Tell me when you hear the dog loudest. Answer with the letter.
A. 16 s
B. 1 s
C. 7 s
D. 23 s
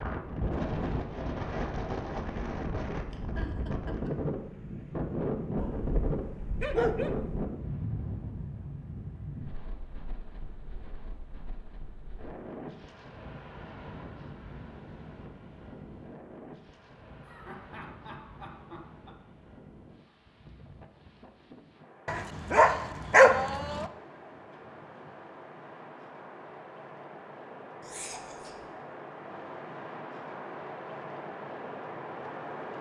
D.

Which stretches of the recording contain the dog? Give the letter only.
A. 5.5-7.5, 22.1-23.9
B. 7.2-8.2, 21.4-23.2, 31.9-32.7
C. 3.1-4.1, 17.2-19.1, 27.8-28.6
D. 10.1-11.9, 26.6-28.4
A.